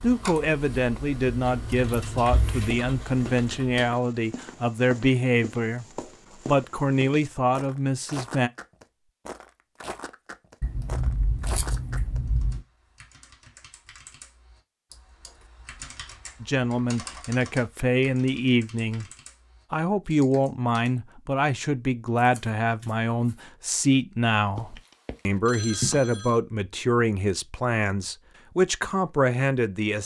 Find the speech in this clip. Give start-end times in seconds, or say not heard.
0.0-5.8, 6.5-8.5, 16.4-19.1, 19.7-30.0.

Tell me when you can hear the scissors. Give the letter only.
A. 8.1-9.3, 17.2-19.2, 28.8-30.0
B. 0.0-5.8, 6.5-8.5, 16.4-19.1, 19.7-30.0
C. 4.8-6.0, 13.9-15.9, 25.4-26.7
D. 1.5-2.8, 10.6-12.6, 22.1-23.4
D.